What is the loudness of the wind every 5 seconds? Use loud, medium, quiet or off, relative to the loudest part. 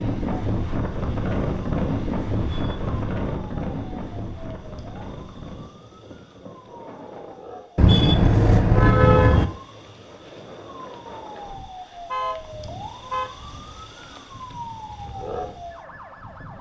loud, quiet, quiet, quiet.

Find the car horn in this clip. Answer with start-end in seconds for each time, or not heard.
2.4-3.0, 7.8-9.4, 12.1-13.3.